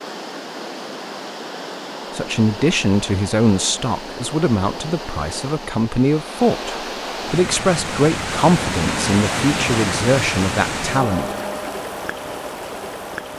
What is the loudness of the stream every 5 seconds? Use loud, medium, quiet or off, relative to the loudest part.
medium, loud, loud.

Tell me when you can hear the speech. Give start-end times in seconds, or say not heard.
2.1-11.3.